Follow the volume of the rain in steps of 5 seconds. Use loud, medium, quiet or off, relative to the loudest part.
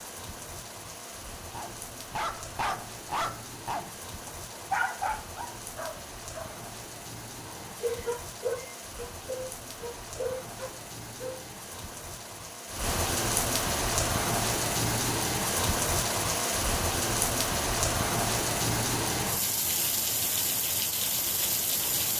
quiet, quiet, loud, loud, loud.